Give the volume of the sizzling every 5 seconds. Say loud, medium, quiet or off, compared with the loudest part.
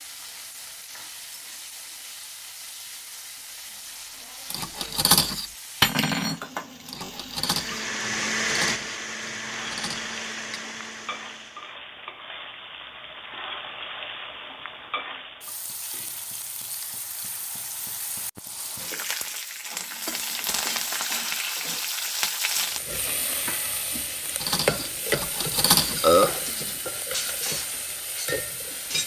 quiet, medium, medium, medium, loud, loud.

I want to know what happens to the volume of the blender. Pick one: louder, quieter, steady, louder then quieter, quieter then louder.
quieter.